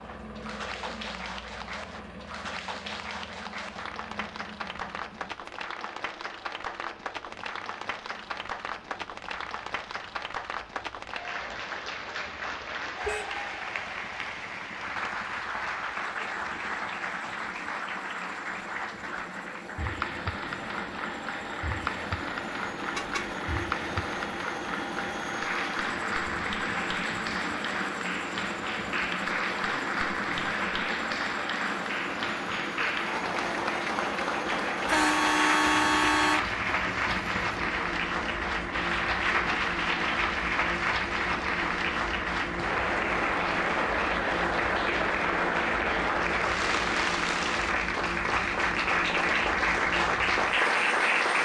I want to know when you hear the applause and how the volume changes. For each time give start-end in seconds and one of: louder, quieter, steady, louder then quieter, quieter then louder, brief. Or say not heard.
0.0-51.3 louder.